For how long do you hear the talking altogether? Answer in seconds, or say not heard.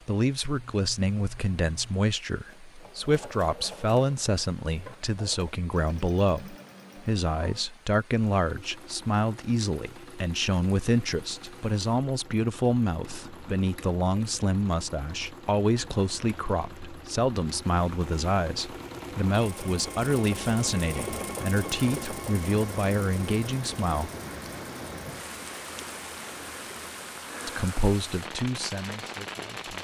26 s.